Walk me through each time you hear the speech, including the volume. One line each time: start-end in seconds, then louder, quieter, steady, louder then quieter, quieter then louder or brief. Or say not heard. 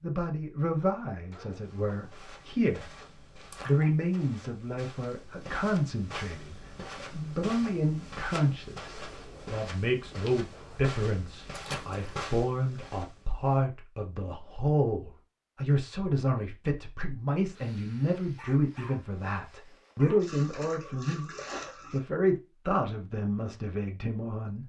0.0-3.0 brief
3.6-24.6 steady.